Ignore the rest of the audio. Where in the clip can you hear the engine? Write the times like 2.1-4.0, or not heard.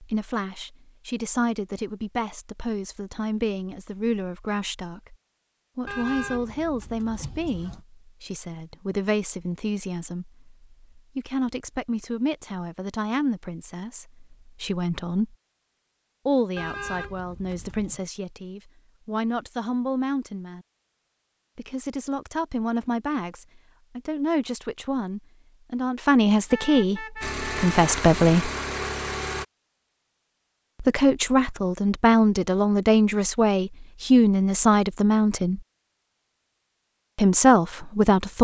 27.2-29.4.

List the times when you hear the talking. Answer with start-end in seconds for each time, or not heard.
0.0-5.2, 5.8-15.3, 16.2-20.6, 21.6-28.5, 30.8-35.6, 37.1-38.3.